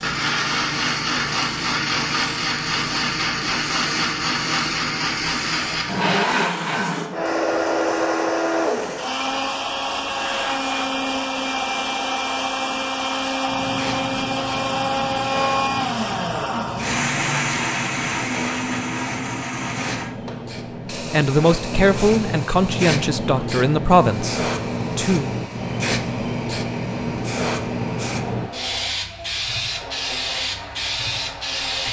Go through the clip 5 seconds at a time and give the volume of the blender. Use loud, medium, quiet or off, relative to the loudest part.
loud, loud, loud, loud, quiet, quiet, quiet.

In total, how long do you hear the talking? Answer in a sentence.
The talking can be heard for 4 seconds in total.